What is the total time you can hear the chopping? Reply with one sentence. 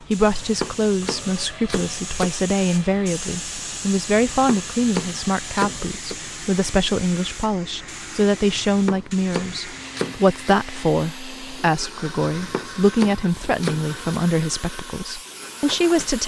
You can hear the chopping for 8 seconds altogether.